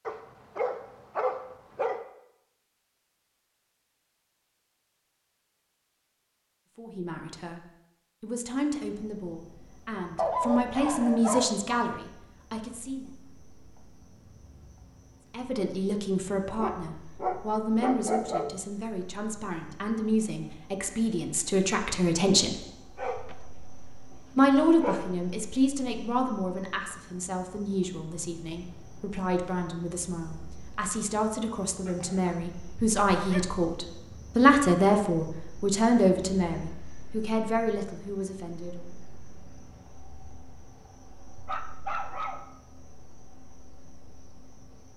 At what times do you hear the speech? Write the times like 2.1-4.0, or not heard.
6.8-7.6, 8.2-13.1, 15.3-22.6, 24.4-38.9.